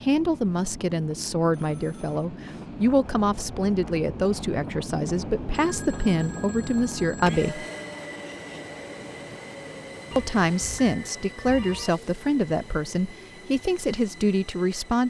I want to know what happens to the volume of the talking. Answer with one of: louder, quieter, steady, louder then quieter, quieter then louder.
steady.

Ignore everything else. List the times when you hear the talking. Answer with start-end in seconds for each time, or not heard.
0.0-7.7, 10.2-15.0.